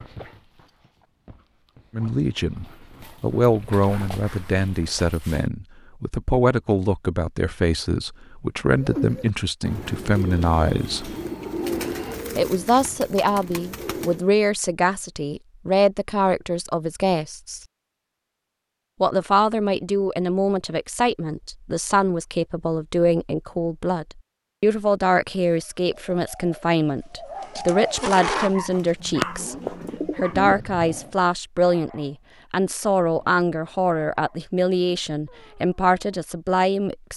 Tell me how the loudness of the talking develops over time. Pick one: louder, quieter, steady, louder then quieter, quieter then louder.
steady.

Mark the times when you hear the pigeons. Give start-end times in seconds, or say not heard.
8.7-14.2, 25.4-30.6.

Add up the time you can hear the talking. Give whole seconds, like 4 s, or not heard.
32 s.